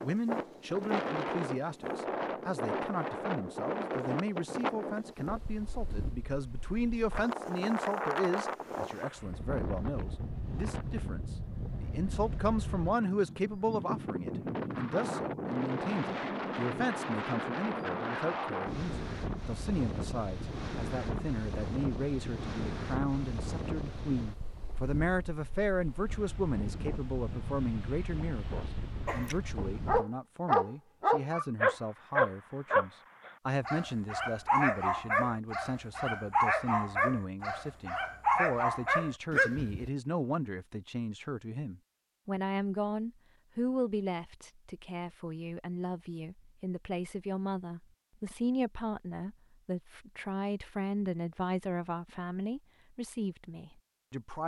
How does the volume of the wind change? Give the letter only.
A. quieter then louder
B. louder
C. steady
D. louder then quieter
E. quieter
E.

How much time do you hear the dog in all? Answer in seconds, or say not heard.
11 s.